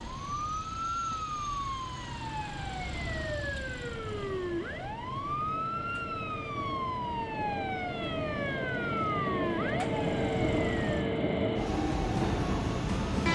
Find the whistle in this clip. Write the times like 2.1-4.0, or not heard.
not heard.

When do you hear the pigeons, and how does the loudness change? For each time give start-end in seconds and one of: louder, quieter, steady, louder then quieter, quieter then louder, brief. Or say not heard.
not heard.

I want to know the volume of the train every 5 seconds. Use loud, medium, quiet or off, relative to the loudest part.
quiet, medium, loud.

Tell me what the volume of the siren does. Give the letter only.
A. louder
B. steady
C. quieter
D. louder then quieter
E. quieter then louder
B.